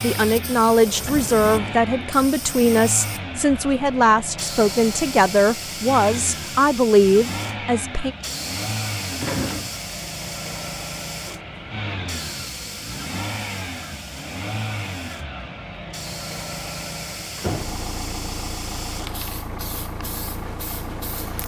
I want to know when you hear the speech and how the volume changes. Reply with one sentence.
You can hear the speech from 0.0 to 8.2 s, at a steady volume.